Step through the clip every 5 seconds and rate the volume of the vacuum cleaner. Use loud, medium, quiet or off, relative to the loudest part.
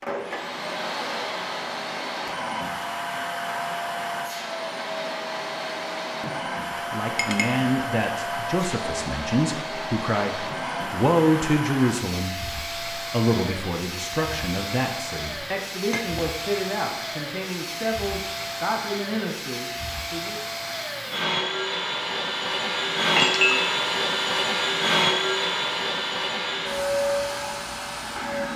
medium, medium, medium, medium, loud, loud.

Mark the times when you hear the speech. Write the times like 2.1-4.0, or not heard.
6.9-20.4.